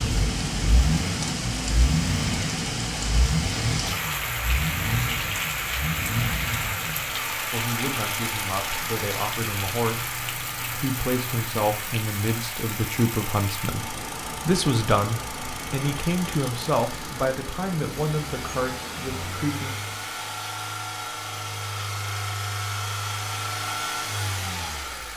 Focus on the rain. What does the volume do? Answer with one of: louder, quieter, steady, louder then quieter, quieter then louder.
quieter.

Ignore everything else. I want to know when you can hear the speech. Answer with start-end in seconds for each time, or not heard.
7.5-19.7.